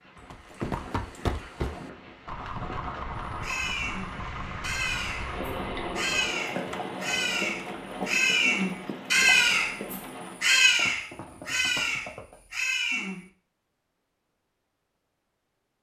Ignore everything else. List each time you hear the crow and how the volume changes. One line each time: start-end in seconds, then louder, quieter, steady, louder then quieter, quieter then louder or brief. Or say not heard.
3.4-13.2 louder then quieter.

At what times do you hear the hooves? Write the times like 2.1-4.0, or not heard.
0.1-12.3.